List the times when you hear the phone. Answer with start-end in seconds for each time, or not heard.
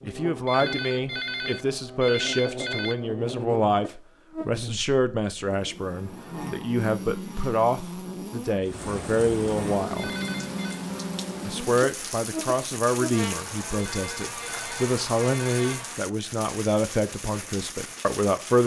0.5-3.0, 9.9-10.8, 13.8-15.6.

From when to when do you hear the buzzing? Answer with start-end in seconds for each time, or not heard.
0.0-16.0.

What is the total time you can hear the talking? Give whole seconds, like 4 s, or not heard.
17 s.